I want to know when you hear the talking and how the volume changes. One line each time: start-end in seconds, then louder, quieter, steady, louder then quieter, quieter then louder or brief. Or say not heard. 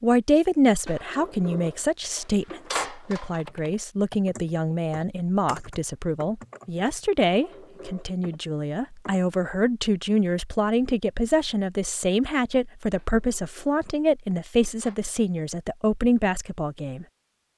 0.0-17.1 steady.